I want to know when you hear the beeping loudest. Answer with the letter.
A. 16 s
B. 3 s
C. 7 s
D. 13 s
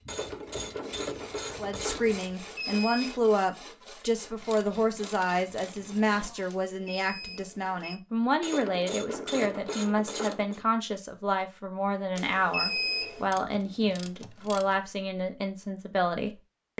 D.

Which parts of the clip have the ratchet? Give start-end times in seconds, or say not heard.
0.1-2.1, 4.4-6.3, 8.4-10.6, 13.3-14.8.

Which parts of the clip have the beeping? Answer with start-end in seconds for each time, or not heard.
2.4-3.1, 6.5-8.0, 12.2-13.2.